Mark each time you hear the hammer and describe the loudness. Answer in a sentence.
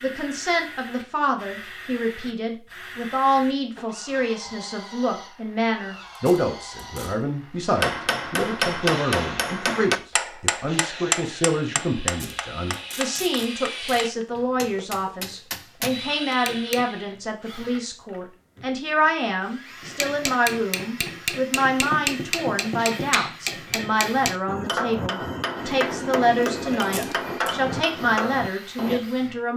The hammer can be heard from 7.7 to 16.9 s, getting quieter then louder; and from 19.8 to 29.0 s, at a steady volume.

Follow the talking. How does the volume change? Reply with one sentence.
The volume of the talking stays about the same.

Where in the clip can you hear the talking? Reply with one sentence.
The talking can be heard from 0.0 to 29.5 s.